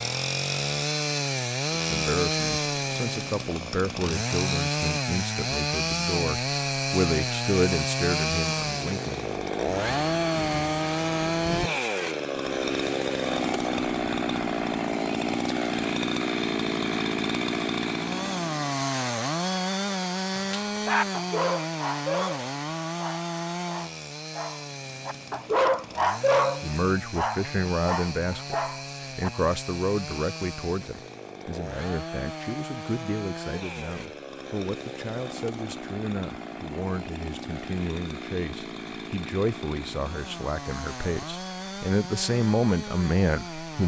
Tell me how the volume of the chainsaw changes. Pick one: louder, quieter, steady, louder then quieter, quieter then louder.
quieter.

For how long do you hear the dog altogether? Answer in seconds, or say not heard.
9 s.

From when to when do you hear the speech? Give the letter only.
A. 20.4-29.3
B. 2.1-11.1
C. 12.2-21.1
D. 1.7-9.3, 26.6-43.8
D.